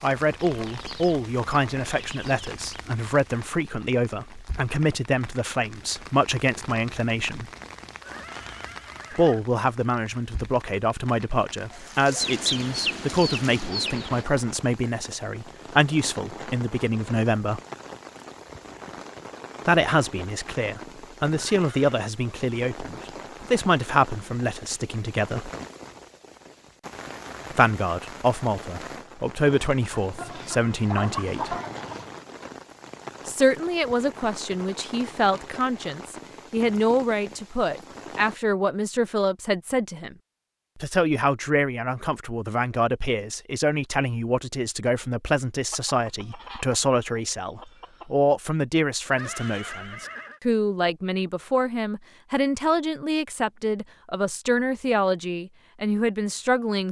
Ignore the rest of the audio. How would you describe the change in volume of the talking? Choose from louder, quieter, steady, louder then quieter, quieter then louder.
steady.